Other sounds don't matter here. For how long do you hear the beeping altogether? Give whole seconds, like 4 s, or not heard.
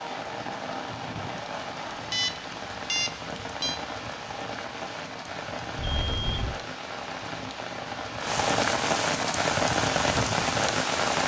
3 s.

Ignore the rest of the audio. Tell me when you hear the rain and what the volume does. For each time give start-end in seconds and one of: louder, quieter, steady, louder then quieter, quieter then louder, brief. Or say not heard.
0.0-11.2 louder.